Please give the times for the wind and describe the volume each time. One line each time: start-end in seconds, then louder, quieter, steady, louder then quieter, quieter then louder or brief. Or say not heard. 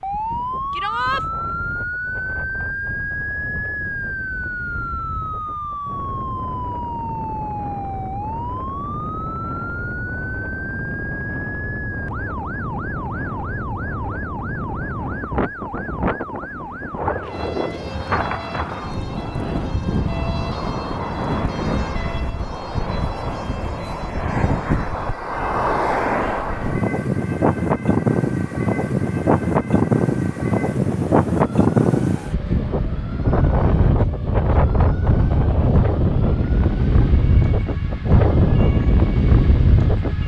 0.0-40.2 louder.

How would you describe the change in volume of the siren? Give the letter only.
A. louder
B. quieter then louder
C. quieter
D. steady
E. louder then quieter
C.